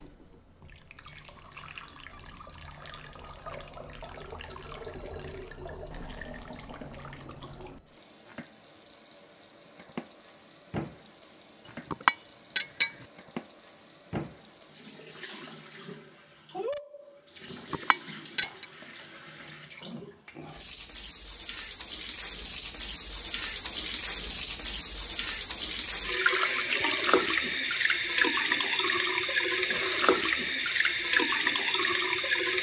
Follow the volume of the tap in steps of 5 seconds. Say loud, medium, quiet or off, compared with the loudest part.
quiet, quiet, quiet, quiet, medium, loud, loud.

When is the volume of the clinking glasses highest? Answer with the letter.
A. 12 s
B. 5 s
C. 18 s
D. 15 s
A.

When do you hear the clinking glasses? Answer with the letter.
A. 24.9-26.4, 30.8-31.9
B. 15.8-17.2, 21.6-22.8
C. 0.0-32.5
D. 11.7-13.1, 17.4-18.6
D.